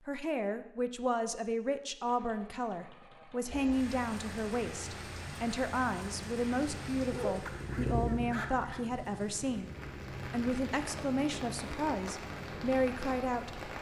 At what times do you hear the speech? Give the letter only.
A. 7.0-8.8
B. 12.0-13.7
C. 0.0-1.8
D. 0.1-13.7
D.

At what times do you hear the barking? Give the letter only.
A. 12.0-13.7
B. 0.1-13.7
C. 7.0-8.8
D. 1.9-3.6
C.